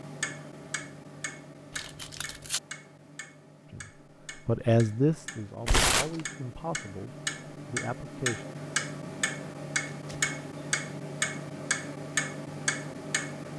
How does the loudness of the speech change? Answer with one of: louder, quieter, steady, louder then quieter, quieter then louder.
quieter.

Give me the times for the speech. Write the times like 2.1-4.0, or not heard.
3.7-8.4.